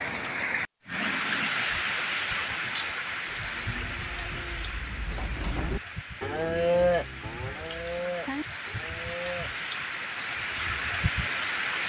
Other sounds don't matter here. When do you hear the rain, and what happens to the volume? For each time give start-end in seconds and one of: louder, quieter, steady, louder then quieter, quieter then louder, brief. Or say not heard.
0.0-11.8 quieter then louder.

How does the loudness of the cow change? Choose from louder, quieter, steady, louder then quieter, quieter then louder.
louder then quieter.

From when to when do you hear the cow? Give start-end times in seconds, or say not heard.
3.4-9.6.